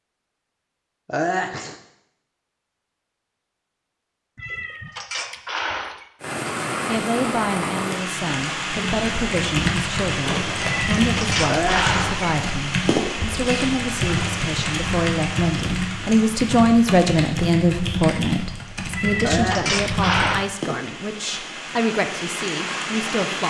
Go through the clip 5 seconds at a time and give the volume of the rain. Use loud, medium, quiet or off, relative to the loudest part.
off, loud, loud, medium, loud.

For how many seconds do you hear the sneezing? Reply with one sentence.
You can hear the sneezing for 2 seconds altogether.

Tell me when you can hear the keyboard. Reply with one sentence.
The keyboard can be heard from 8.6 to 20.4 s.